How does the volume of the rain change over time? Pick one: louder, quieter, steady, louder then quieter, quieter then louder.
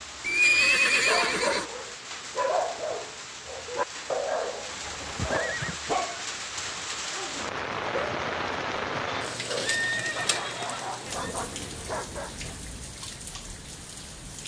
louder then quieter.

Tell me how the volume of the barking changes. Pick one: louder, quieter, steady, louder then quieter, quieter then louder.
quieter.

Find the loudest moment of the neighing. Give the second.
1 s.